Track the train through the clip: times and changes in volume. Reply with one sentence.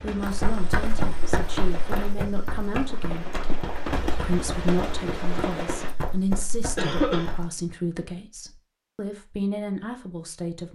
The train can be heard from 0.0 to 6.0 s, getting louder.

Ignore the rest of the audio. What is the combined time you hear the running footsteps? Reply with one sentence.
The running footsteps can be heard for 7 seconds in total.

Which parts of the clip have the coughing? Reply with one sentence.
You can hear the coughing from 6.8 to 7.3 s.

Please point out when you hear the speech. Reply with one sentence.
The speech can be heard from 0.0 to 3.2 s and from 4.0 to 10.7 s.